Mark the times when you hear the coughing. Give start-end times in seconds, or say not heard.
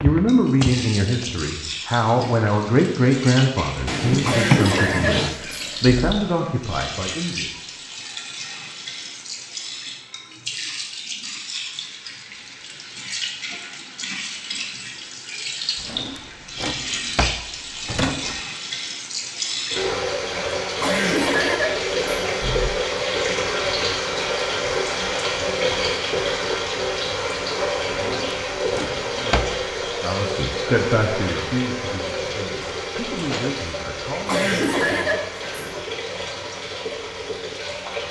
4.2-6.0, 20.8-22.7, 34.2-35.8.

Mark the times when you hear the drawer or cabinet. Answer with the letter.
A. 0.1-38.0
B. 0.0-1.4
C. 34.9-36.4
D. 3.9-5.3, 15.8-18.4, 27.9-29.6
D.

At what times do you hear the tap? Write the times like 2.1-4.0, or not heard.
0.1-38.0.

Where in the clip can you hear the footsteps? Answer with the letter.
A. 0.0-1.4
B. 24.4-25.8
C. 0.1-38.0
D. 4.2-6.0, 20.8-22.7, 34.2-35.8
A.